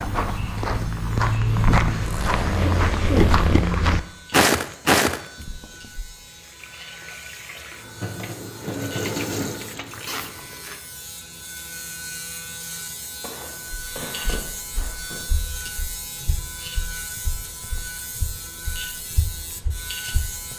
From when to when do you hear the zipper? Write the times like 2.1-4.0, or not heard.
2.0-3.8, 10.1-10.8, 14.0-14.4.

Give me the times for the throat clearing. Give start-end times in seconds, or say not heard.
2.5-3.4, 13.2-15.2.